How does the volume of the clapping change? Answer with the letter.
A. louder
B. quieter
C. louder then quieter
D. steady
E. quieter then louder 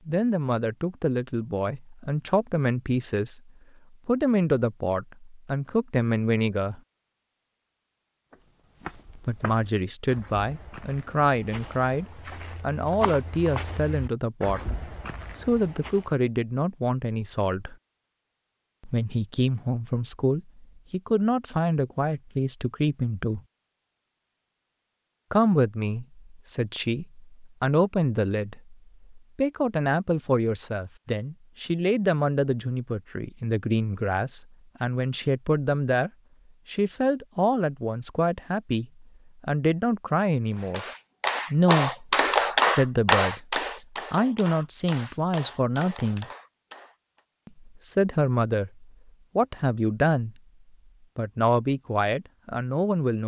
B.